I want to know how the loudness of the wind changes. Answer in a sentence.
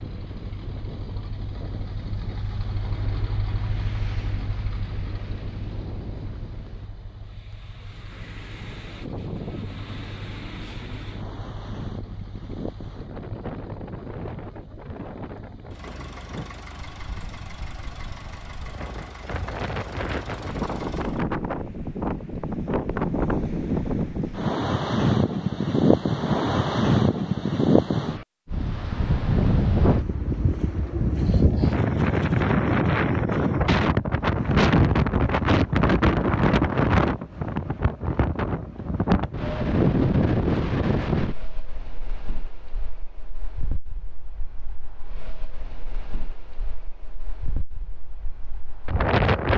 The volume of the wind goes up, then down.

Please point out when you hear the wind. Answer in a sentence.
You can hear the wind from 0.0 to 49.5 s.